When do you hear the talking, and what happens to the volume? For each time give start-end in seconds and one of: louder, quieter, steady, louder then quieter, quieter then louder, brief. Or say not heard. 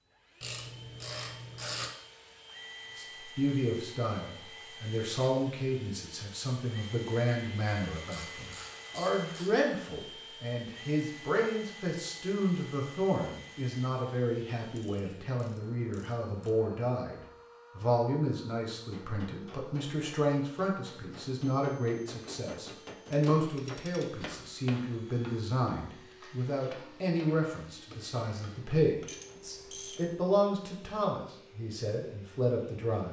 3.0-33.0 steady.